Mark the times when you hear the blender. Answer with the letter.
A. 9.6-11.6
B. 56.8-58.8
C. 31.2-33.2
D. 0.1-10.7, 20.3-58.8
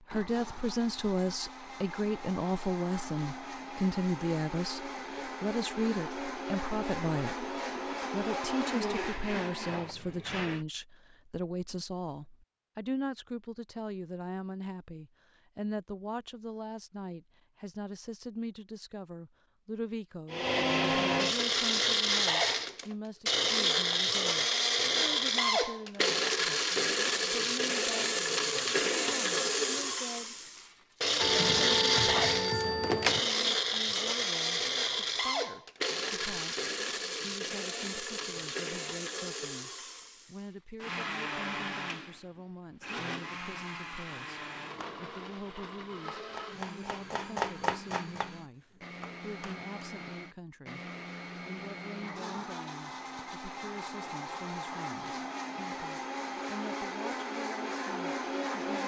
D.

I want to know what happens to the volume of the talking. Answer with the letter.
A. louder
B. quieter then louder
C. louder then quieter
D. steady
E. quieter
E.